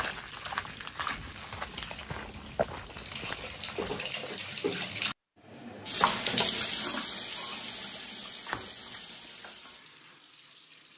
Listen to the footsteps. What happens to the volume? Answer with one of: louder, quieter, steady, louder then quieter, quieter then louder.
quieter.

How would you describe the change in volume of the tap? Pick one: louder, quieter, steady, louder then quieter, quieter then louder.
louder then quieter.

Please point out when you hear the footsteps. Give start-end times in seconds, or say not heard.
0.0-4.0.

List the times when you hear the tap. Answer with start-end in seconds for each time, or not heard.
0.0-10.9.